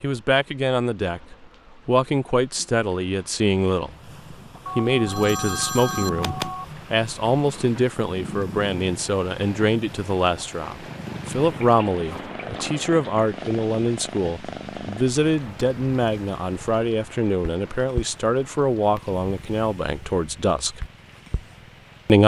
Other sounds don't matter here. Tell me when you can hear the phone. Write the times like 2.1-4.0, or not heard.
4.7-6.7.